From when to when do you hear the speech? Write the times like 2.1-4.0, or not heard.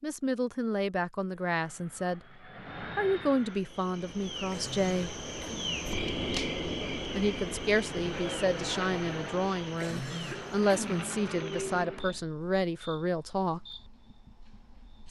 0.0-2.2, 2.8-5.2, 7.2-13.7.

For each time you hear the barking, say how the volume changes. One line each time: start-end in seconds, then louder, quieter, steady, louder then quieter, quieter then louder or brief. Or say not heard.
not heard.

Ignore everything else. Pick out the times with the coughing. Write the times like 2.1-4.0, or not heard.
4.5-5.7, 9.8-11.1.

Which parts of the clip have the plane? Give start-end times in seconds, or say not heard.
1.5-3.6, 7.7-12.2.